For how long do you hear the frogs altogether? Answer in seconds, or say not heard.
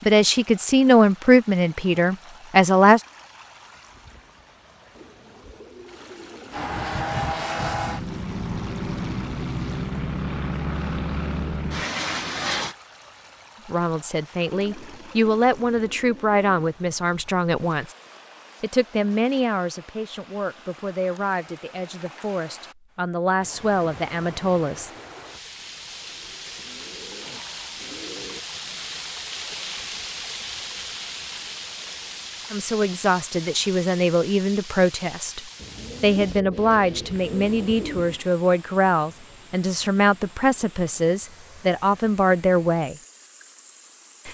not heard.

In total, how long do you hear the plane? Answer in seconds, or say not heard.
6 s.